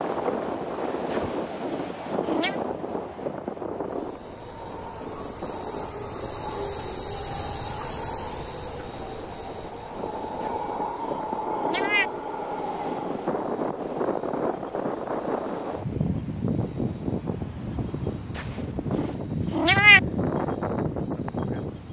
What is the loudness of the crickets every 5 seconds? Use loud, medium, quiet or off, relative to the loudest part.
quiet, loud, loud, quiet, quiet.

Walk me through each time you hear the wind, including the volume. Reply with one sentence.
You can hear the wind from 0.0 to 21.8 s, getting quieter then louder.